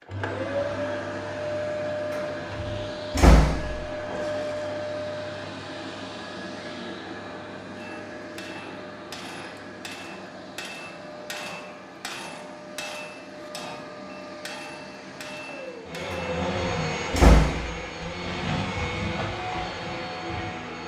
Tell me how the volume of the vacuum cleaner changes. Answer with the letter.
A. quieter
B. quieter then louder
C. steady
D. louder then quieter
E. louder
B.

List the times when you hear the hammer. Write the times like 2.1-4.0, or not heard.
7.8-16.3.